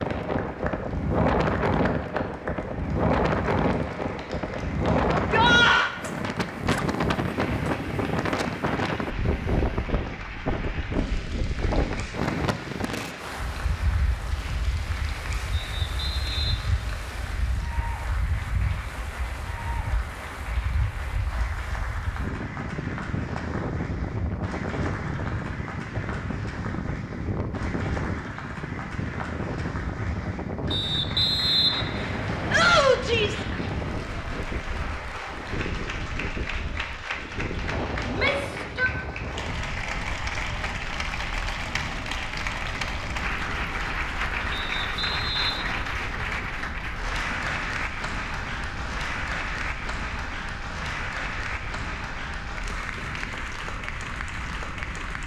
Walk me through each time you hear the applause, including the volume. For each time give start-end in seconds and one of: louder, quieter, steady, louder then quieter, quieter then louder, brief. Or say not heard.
0.0-55.2 louder.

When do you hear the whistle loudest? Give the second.
32 s.